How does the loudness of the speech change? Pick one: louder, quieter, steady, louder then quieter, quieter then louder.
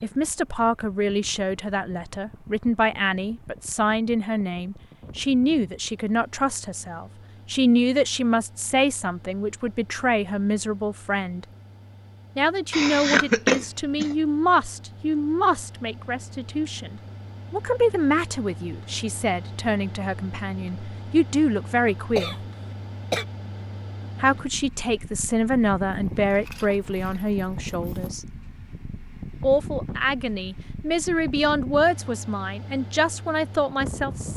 steady.